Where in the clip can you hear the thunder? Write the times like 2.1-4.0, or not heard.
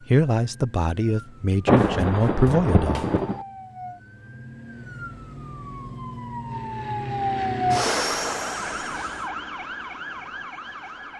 1.6-3.5.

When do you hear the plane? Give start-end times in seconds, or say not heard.
6.5-9.3.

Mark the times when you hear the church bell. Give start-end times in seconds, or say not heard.
not heard.